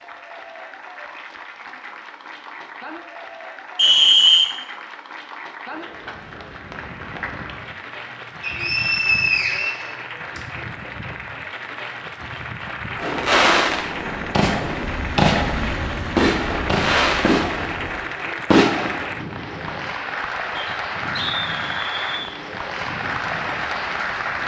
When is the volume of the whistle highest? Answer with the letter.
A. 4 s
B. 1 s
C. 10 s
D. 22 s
A.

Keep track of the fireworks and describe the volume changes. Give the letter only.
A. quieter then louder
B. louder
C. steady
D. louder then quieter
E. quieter
C.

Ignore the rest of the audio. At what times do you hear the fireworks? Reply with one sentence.
You can hear the fireworks from 12.9 to 19.4 s.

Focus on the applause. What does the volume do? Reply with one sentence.
The volume of the applause goes up.